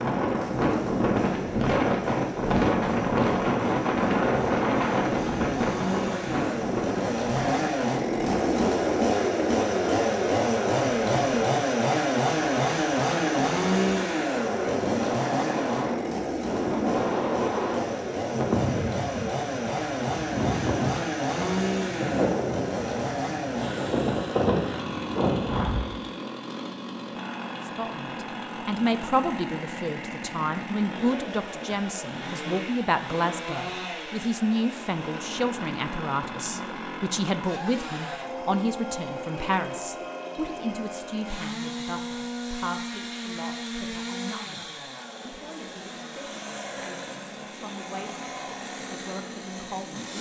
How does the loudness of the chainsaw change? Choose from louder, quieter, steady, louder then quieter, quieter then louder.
quieter.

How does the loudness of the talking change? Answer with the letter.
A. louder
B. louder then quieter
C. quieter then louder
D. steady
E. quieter
E.